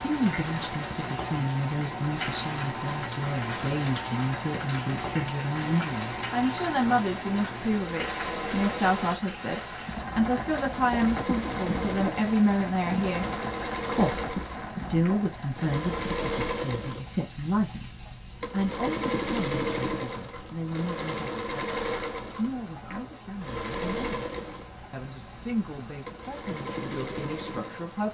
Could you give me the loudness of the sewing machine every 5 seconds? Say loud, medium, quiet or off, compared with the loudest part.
medium, medium, loud, loud, loud, medium.